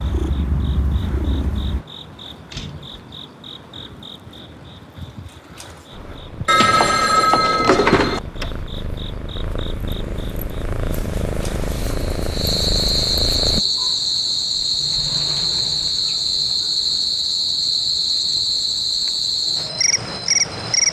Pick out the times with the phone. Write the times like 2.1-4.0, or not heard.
6.5-8.2.